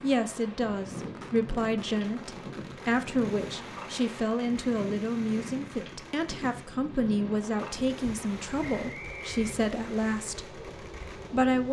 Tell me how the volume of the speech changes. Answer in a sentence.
The volume of the speech stays about the same.